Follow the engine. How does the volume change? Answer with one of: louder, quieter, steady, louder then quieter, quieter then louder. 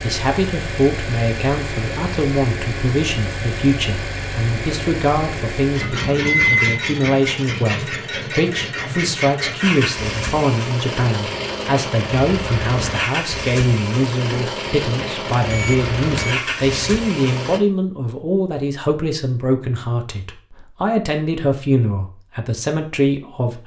steady.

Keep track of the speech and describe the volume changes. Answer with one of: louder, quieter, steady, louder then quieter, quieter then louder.
steady.